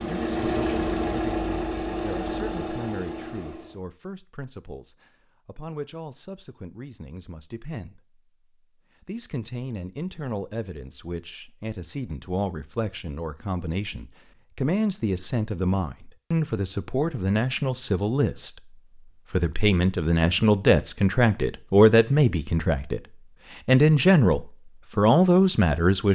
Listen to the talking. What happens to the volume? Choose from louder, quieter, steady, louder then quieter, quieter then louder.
louder.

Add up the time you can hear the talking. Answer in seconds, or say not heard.
25 s.